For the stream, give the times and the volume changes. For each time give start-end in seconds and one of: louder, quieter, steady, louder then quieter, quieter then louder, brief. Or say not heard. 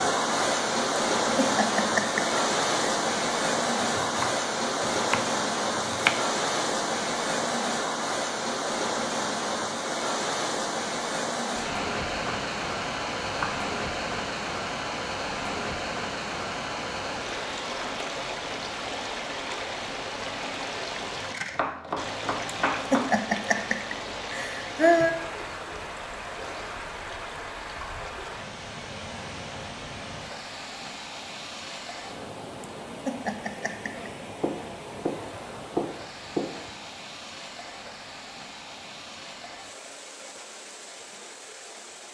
0.0-42.0 quieter.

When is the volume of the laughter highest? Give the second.
25 s.